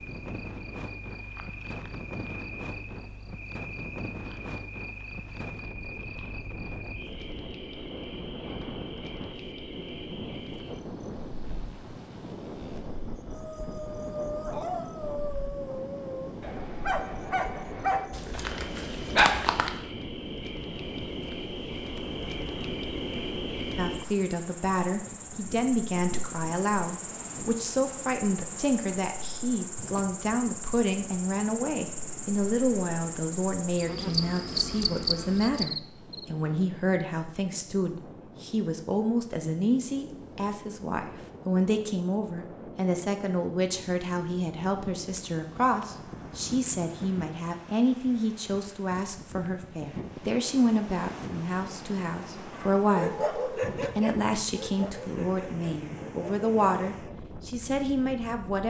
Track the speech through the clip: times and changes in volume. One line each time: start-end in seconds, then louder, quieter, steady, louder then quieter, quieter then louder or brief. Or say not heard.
23.8-58.6 steady.